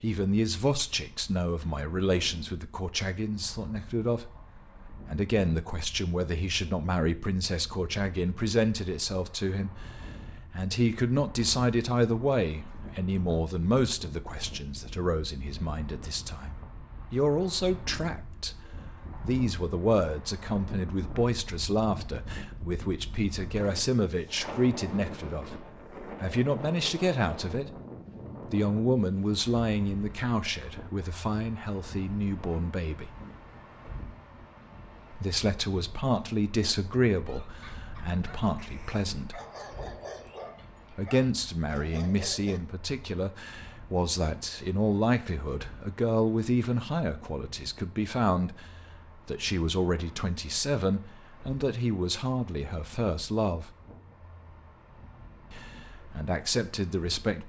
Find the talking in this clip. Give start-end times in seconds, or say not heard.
0.0-27.7, 28.5-33.1, 35.1-39.4, 40.9-53.7, 55.5-57.4.